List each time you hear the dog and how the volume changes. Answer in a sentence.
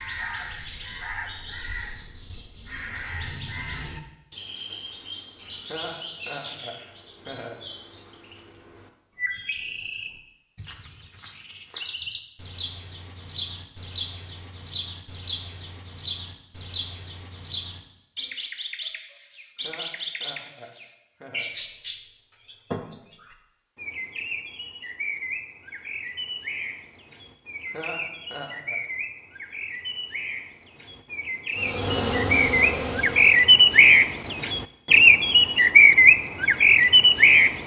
The dog can't be heard in this clip.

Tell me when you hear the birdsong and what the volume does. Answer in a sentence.
You can hear the birdsong from 0.0 to 37.6 s, getting louder.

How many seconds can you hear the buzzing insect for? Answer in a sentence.
The buzzing insect can be heard for 2 seconds in total.